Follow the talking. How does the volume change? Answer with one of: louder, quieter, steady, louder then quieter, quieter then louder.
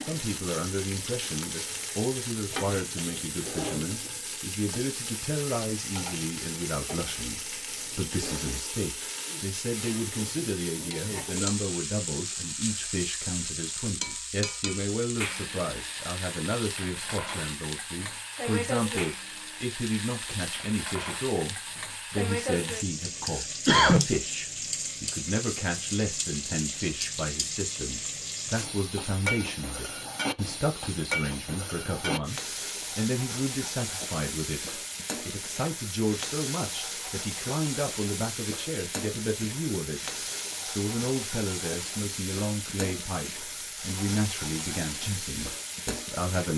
steady.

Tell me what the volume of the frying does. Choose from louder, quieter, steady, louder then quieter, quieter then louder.
steady.